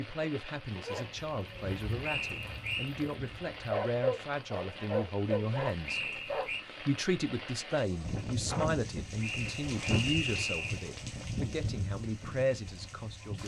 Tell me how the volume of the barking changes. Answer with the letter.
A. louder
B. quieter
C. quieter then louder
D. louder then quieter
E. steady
A.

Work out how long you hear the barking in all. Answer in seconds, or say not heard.
6 s.